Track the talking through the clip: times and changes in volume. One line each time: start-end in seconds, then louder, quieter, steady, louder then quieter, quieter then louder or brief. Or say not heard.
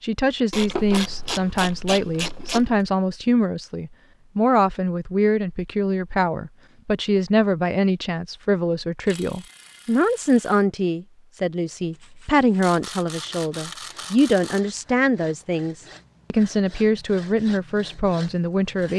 0.0-18.9 steady.